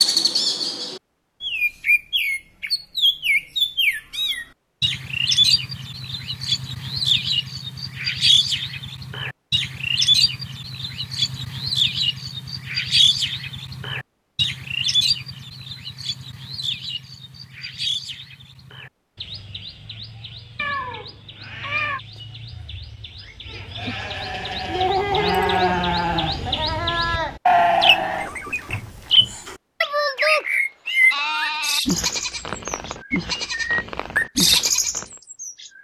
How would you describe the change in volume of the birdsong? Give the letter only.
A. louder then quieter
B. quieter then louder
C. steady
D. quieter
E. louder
B.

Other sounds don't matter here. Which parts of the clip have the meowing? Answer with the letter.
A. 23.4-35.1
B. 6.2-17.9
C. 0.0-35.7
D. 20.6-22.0
D.